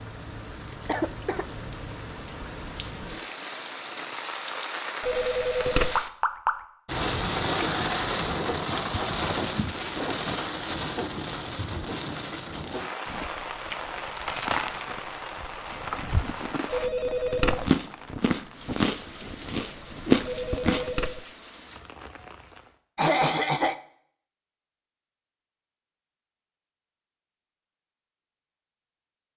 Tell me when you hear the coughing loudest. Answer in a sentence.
The loudest moment of the coughing is at 23 seconds.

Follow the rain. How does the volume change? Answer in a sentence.
The volume of the rain goes up, then down.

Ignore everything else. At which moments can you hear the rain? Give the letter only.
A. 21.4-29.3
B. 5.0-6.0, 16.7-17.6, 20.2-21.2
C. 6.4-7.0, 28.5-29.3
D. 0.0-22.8
D.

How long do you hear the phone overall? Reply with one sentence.
The phone can be heard for 3 seconds in total.